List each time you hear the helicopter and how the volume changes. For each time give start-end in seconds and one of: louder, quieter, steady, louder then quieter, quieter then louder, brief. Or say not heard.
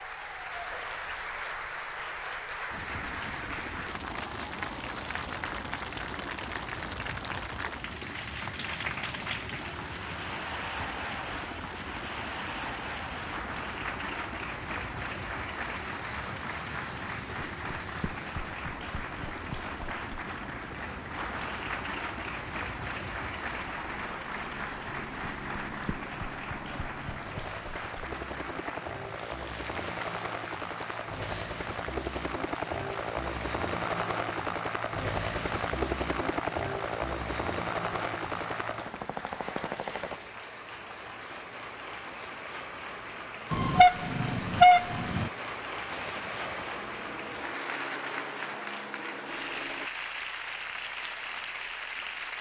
2.7-40.2 louder
45.9-49.9 steady.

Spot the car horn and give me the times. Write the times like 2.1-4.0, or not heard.
43.5-45.3.